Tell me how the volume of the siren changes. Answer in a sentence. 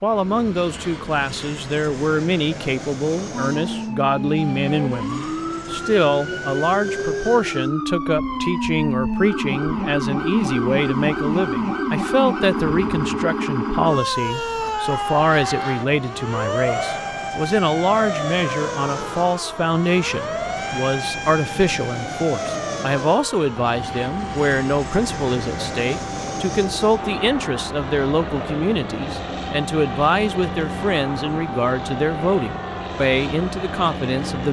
The loudness of the siren goes down.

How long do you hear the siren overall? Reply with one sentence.
The siren can be heard for 31 seconds in total.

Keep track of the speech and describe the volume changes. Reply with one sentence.
The volume of the speech stays about the same.